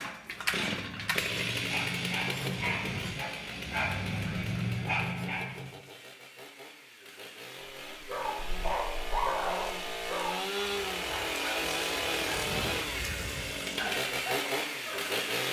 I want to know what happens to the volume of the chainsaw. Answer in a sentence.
The volume of the chainsaw goes down, then up.